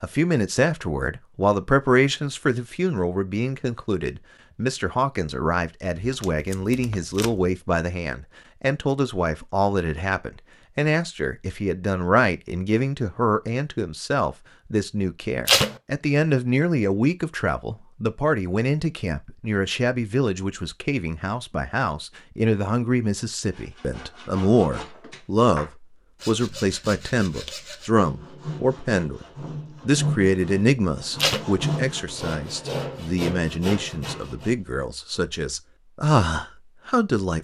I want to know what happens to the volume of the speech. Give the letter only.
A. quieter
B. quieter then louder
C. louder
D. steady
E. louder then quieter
D.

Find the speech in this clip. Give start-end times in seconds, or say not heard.
0.0-29.2, 29.9-37.3.